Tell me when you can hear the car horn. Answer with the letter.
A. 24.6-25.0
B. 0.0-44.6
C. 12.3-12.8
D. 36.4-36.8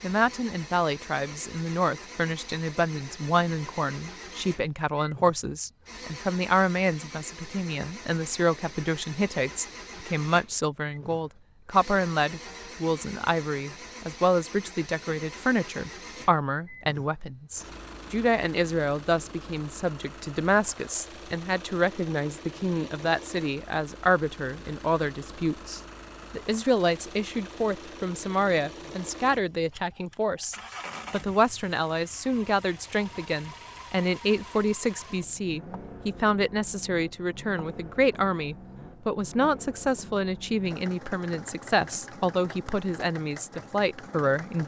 C.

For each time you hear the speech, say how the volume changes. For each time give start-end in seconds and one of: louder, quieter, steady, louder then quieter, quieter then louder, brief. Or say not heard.
0.0-44.6 steady.